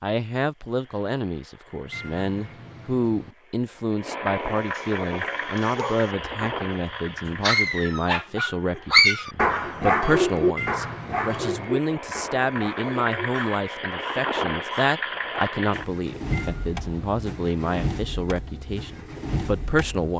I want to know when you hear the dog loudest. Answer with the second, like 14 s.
9 s.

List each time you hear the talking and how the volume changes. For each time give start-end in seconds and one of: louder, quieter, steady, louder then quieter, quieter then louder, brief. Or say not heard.
0.0-20.1 steady.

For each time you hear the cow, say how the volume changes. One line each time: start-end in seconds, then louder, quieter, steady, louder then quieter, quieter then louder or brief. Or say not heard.
not heard.